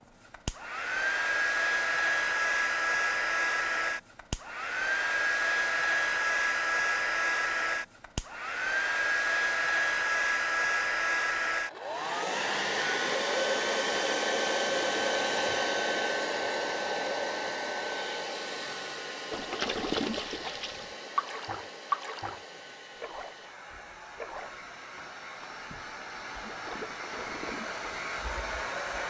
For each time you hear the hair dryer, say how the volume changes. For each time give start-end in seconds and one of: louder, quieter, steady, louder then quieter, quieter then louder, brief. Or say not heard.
0.2-29.0 quieter.